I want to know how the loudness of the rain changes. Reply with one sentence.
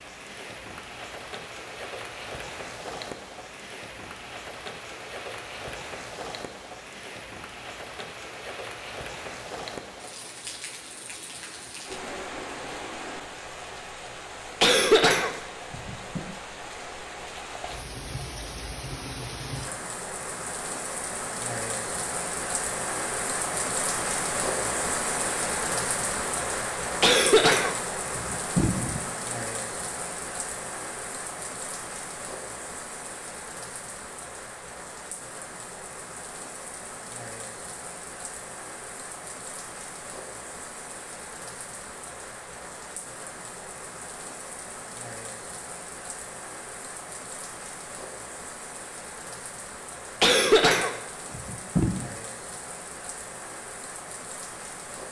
The loudness of the rain goes up, then down.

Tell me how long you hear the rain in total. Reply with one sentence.
You can hear the rain for 55 seconds altogether.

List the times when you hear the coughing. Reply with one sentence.
The coughing can be heard from 14.6 to 16.2 s, from 27.0 to 29.0 s and from 50.2 to 52.0 s.